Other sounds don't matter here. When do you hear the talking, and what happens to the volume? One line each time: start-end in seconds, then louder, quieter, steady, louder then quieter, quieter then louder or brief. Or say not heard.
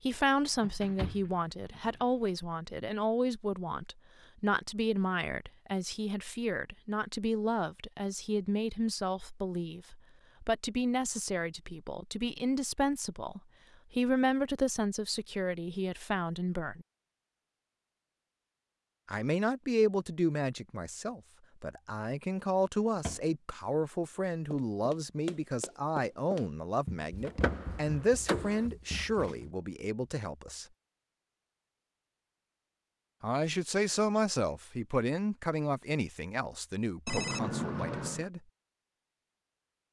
0.0-16.9 steady
19.1-30.6 steady
33.2-38.4 quieter.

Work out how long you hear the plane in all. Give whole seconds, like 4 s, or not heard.
not heard.